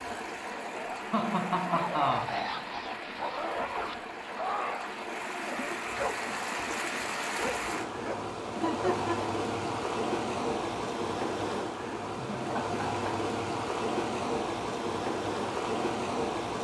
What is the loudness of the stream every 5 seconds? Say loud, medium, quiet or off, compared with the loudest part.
medium, loud, loud, loud.